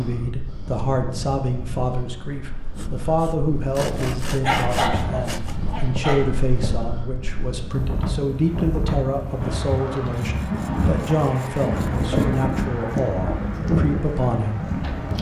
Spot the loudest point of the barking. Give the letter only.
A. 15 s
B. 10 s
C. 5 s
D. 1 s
C.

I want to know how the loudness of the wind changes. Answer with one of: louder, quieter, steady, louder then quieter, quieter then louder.
louder.